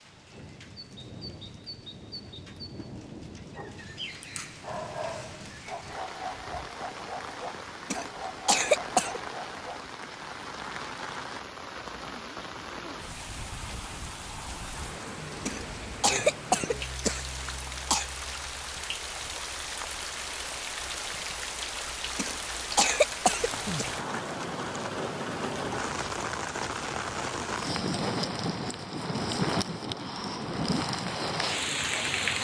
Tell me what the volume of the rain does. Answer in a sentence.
The volume of the rain goes up.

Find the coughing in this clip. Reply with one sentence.
You can hear the coughing from 7.9 to 9.2 s, from 15.4 to 18.1 s and from 22.1 to 23.9 s.